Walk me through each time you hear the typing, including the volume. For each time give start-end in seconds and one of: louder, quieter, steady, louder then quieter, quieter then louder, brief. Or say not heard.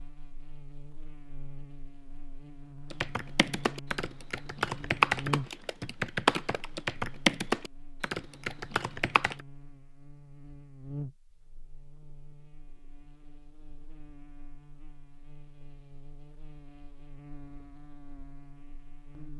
2.9-9.3 louder then quieter.